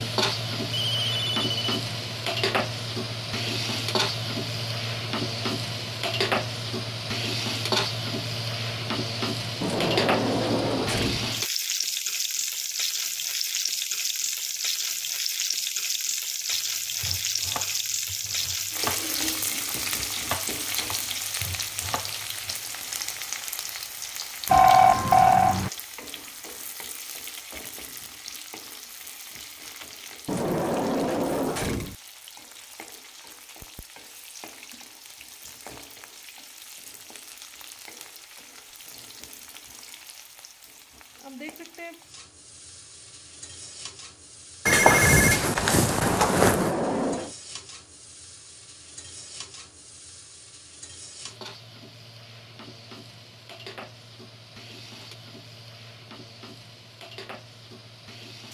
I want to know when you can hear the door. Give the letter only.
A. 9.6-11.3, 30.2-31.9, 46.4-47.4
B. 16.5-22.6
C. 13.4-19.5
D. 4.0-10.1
A.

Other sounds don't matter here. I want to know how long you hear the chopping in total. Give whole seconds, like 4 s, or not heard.
6 s.